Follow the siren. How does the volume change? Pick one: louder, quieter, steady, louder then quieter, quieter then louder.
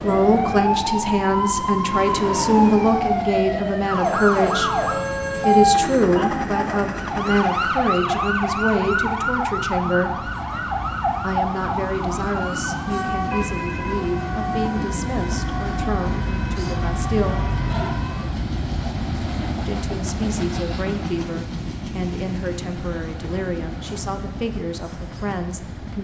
quieter.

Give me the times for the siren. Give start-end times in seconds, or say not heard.
0.0-18.4.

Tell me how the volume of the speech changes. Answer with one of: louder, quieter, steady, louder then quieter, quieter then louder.
quieter.